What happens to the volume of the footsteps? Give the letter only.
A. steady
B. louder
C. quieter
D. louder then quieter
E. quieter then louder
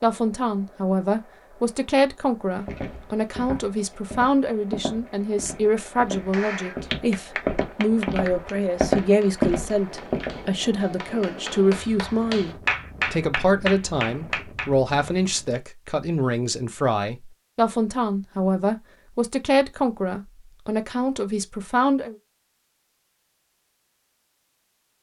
B.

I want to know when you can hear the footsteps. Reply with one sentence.
The footsteps can be heard from 2.5 to 10.6 s.